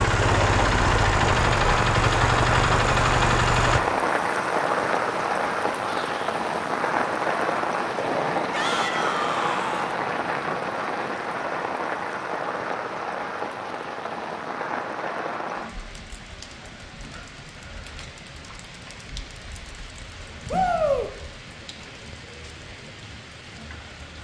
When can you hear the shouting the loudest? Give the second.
21 s.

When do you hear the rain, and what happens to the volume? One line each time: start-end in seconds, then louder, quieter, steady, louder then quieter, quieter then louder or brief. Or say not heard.
0.0-24.1 quieter.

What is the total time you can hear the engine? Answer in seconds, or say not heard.
4 s.